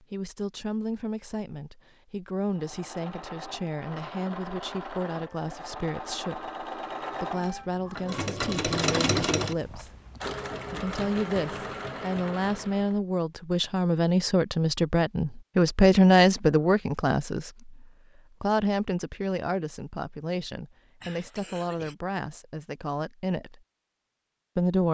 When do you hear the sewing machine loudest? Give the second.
9 s.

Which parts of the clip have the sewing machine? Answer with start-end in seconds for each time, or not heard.
2.5-13.0.